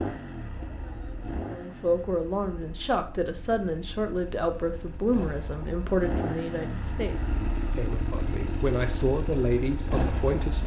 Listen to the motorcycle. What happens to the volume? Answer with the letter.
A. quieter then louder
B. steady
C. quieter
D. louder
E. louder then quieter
A.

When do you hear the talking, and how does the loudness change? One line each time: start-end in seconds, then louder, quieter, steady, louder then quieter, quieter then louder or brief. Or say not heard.
1.5-10.6 quieter then louder.